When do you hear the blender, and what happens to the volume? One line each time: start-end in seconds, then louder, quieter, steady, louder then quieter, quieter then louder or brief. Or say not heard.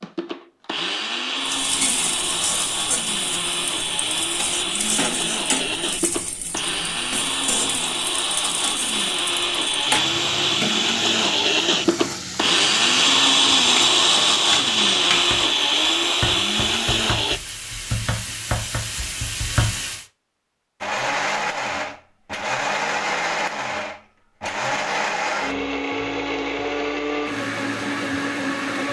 0.0-17.4 louder
20.8-28.8 steady.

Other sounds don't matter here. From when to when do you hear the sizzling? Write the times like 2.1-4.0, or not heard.
1.4-20.1.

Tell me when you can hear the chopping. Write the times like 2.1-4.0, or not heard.
not heard.